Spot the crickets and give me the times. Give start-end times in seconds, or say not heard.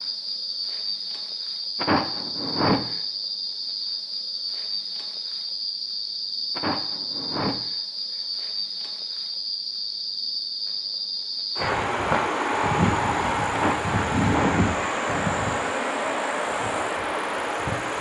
0.0-17.9.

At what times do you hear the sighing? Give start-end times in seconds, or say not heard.
1.8-3.0, 6.5-8.2, 13.5-14.7.